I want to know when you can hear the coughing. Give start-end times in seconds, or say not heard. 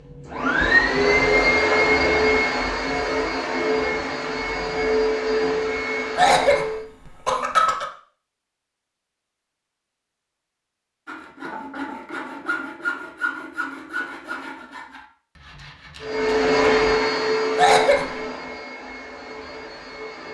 6.2-7.8, 17.6-18.1.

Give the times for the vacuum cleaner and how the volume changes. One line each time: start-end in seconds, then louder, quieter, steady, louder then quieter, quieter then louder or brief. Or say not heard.
0.0-6.8 quieter
16.0-20.2 quieter.